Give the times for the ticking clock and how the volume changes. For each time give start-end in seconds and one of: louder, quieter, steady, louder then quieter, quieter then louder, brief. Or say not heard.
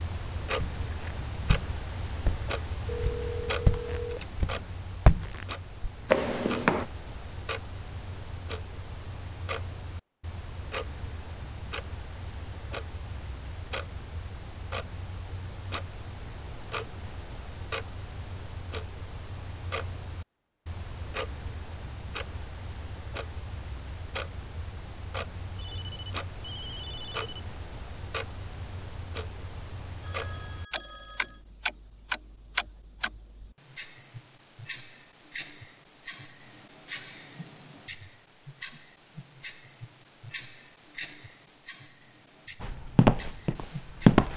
0.0-44.3 steady.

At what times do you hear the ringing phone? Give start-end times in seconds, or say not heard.
2.9-4.3, 25.6-27.4, 30.0-31.4.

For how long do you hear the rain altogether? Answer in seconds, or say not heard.
not heard.